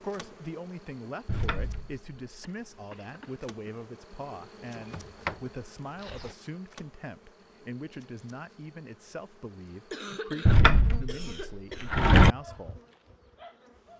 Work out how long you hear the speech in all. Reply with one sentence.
The speech can be heard for 13 seconds in total.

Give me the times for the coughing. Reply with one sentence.
The coughing can be heard from 2.4 to 3.5 s and from 9.9 to 11.9 s.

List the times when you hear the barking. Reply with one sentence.
You can hear the barking from 12.3 to 13.9 s.